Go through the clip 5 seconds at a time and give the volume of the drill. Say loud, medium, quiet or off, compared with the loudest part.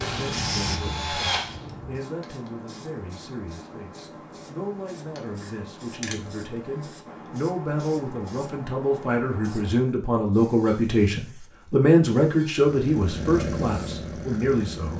loud, off, loud.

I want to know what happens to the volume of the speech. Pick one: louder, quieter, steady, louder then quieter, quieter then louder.
louder.